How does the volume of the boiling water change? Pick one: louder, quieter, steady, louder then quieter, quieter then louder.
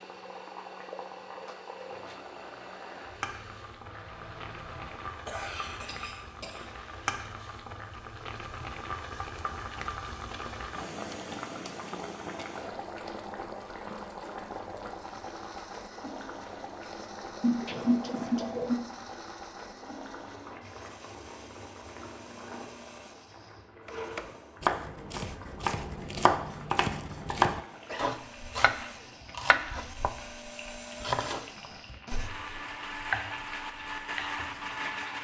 quieter.